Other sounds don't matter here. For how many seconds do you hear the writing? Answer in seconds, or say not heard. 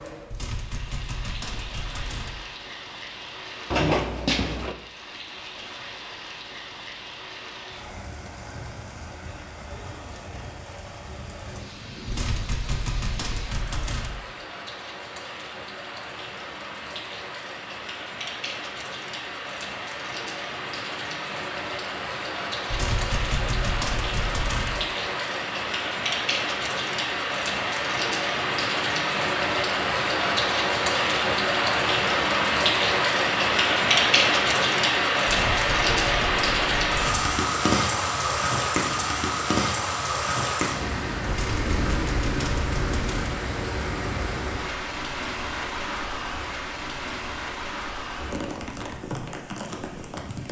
not heard.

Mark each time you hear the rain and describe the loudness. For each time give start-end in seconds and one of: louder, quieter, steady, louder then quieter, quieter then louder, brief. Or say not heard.
0.0-50.4 louder then quieter.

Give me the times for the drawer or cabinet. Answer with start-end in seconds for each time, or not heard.
3.7-4.8.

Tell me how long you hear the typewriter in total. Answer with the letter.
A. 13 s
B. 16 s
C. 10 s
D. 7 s
C.